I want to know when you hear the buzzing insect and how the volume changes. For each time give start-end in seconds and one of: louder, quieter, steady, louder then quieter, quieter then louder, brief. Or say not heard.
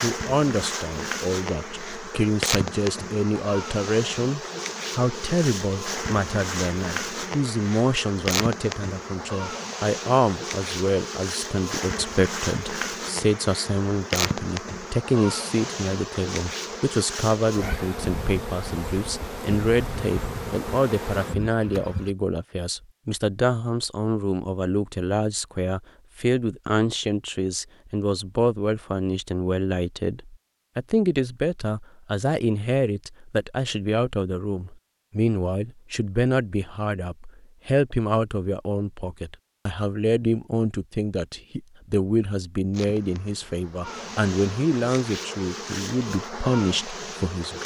0.0-22.1 steady
42.7-47.6 louder.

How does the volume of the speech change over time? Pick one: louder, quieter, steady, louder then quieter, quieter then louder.
steady.